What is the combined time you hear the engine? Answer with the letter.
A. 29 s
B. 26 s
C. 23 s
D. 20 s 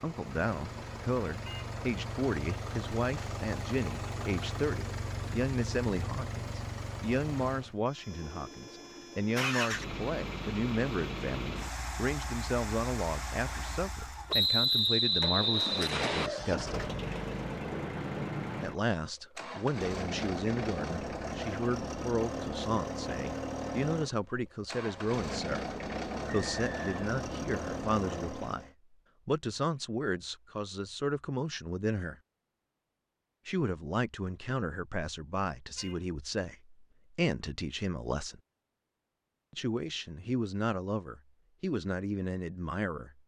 A.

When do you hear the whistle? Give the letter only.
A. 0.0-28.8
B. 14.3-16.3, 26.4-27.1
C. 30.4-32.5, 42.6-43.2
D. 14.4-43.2
B.